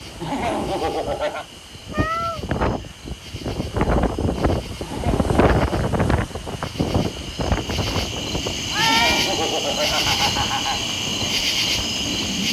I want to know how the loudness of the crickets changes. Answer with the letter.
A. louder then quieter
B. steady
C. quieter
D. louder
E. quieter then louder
D.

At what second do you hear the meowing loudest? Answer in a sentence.
The volume of the meowing peaks at 9 seconds.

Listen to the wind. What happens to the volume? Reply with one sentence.
The volume of the wind goes up, then down.